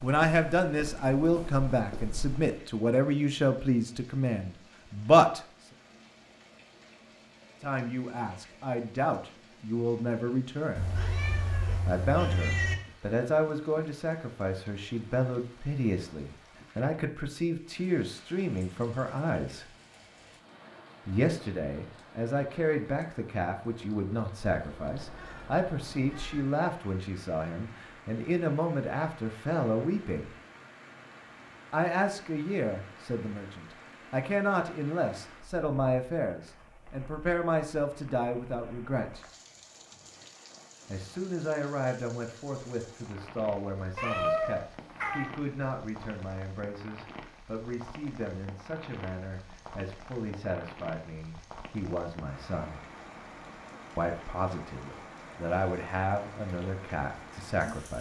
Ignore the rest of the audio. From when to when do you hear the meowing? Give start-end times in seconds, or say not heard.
10.8-12.8, 24.4-26.4, 44.0-45.4.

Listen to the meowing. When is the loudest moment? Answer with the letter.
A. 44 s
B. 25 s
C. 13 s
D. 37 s
A.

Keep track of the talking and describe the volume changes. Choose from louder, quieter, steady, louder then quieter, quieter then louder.
quieter.